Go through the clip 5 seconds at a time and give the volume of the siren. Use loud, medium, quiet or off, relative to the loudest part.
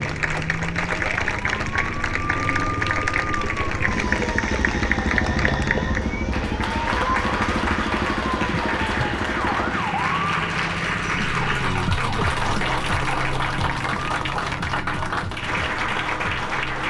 loud, loud, loud, medium.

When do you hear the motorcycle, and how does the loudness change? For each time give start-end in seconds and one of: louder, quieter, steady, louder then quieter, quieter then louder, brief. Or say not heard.
0.2-16.8 louder then quieter.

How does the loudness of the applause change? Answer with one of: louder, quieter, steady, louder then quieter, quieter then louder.
steady.